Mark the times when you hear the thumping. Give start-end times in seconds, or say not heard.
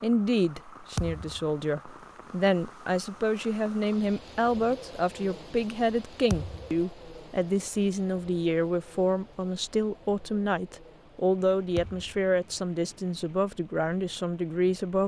0.9-1.5, 6.3-6.8, 11.8-12.2.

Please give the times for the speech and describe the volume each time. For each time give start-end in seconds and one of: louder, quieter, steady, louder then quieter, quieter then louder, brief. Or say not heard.
0.0-15.0 steady.